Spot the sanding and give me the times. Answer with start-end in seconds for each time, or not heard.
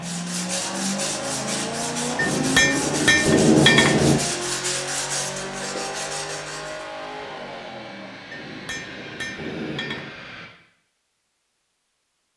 0.0-6.8.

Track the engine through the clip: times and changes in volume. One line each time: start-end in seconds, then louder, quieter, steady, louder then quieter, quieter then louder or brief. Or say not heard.
0.0-10.5 quieter.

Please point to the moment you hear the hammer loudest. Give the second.
4 s.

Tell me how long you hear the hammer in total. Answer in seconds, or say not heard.
4 s.